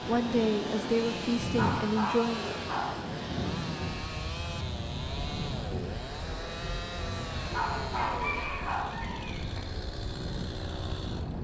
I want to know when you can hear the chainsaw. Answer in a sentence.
The chainsaw can be heard from 0.0 to 11.3 s.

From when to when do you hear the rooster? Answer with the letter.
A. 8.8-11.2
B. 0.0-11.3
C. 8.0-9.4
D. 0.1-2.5
C.